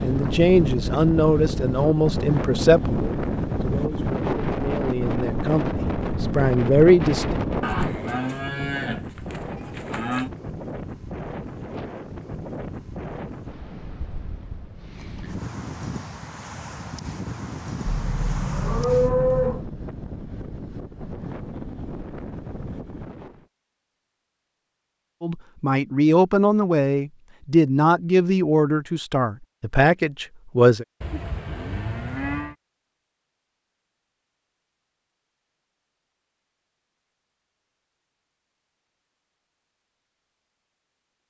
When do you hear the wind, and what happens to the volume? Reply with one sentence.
The wind can be heard from 0.0 to 23.4 s, getting quieter.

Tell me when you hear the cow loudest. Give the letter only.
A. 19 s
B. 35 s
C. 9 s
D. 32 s
A.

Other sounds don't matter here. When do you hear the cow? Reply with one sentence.
You can hear the cow from 7.6 to 10.3 s, from 17.9 to 19.6 s and from 31.0 to 32.5 s.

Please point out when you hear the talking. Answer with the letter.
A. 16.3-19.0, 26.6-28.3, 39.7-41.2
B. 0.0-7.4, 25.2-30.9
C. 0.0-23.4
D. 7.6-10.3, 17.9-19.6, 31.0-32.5
B.